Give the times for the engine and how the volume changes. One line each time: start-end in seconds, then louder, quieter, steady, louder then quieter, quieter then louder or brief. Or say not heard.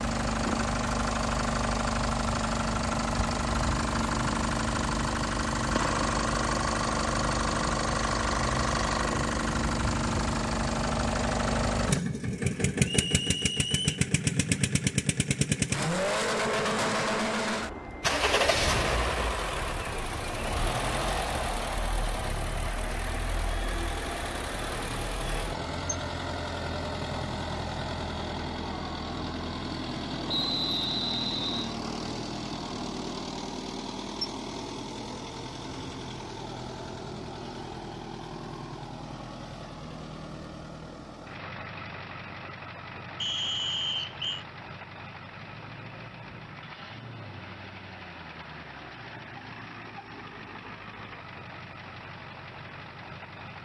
0.0-53.5 quieter.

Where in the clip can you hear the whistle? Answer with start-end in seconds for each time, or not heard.
12.8-14.1, 30.2-31.8, 43.2-44.5.